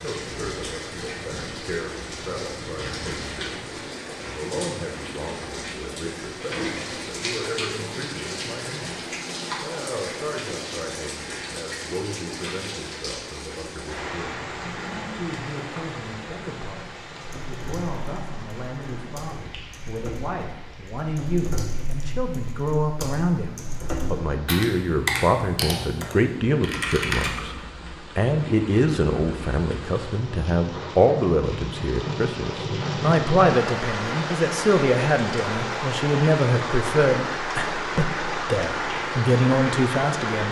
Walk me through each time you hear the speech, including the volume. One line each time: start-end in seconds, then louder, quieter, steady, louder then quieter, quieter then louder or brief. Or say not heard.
0.0-27.6 louder
28.1-40.4 steady.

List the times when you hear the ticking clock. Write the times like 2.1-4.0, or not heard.
not heard.